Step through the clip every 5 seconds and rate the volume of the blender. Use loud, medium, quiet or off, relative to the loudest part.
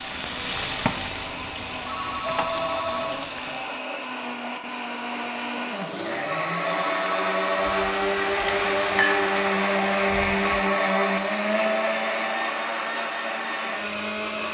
medium, loud, loud.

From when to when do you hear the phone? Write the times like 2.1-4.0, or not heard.
1.9-3.2, 6.2-7.8, 10.6-11.2.